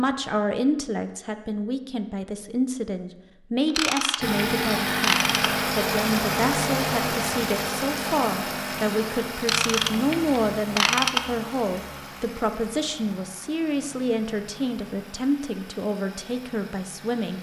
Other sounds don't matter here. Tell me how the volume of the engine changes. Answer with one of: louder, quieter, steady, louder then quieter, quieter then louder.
quieter.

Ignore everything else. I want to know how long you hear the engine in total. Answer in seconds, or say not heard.
13 s.